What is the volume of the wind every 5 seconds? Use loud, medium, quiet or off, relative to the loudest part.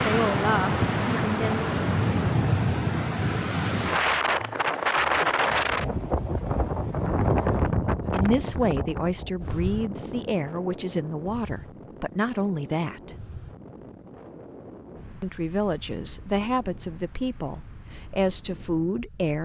loud, loud, quiet, quiet.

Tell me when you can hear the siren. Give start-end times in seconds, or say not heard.
not heard.